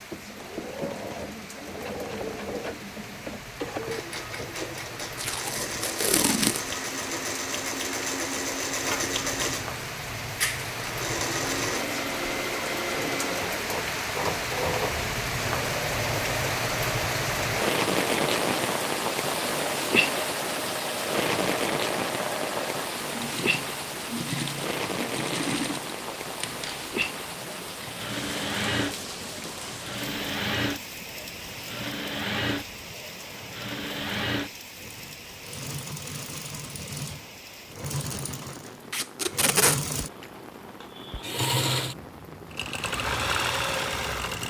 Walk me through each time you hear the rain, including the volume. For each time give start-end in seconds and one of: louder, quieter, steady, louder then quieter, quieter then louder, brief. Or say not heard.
0.0-44.4 louder then quieter.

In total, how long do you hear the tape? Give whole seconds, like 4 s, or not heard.
2 s.